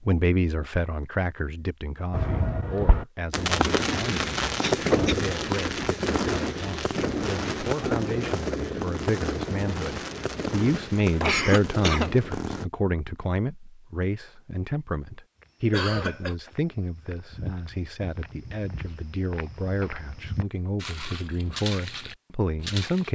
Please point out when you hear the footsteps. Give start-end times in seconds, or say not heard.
15.3-23.0.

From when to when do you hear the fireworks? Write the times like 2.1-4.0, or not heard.
2.1-12.7.